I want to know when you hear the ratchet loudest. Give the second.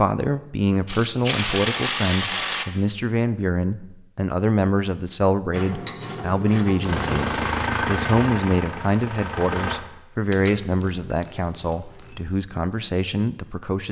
2 s.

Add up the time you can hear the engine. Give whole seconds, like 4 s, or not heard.
3 s.